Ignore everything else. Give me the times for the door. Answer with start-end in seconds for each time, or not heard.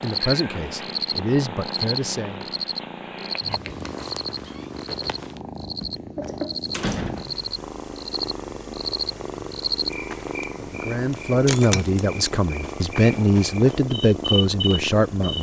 6.7-7.5.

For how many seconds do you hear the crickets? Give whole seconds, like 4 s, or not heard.
15 s.